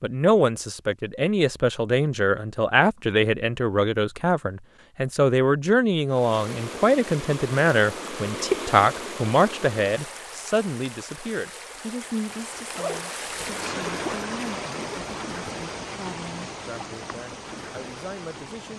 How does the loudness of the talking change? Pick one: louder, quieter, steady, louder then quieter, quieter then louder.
quieter.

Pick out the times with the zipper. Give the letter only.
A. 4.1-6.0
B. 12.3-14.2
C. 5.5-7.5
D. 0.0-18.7
B.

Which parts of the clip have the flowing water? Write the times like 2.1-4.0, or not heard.
6.0-18.7.